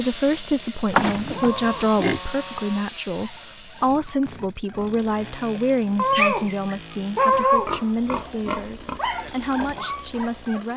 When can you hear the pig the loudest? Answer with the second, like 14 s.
1 s.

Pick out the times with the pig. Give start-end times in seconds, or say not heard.
0.9-2.2, 7.3-9.0.